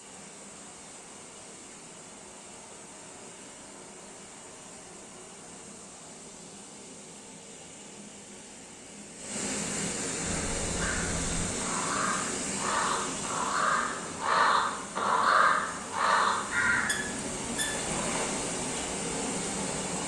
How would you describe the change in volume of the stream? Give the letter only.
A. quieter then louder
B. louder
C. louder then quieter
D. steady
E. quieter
B.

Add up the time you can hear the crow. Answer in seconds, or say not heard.
8 s.